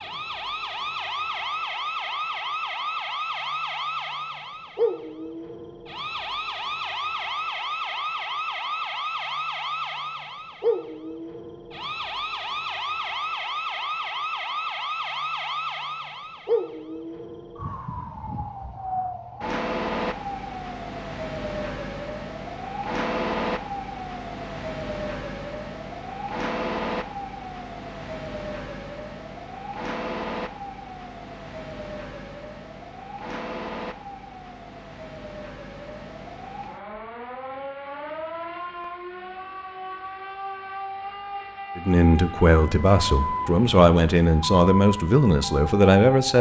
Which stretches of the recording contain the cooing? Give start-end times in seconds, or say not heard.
not heard.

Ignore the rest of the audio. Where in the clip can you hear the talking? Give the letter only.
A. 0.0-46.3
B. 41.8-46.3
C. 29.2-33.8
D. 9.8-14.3
B.